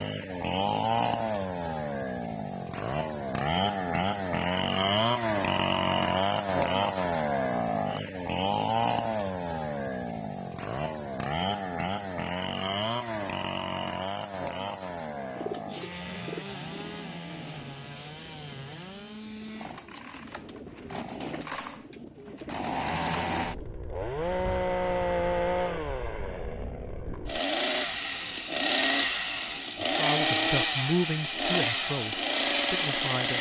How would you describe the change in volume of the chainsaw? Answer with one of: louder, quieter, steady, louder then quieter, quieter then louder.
quieter then louder.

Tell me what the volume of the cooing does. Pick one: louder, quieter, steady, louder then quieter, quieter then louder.
quieter then louder.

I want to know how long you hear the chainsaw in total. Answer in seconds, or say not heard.
33 s.